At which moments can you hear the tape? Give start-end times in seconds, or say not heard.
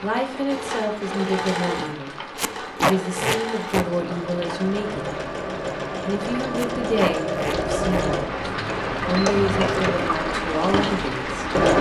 2.4-3.9, 6.5-8.1.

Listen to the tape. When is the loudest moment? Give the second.
3 s.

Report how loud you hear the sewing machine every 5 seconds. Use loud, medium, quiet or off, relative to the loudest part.
medium, loud, loud.